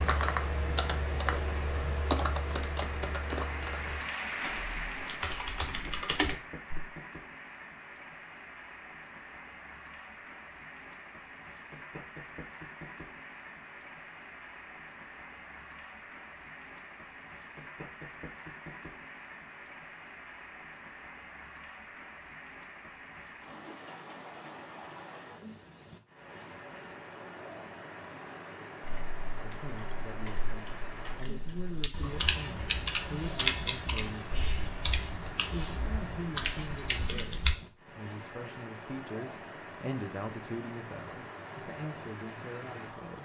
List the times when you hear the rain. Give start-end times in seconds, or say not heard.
0.1-43.2.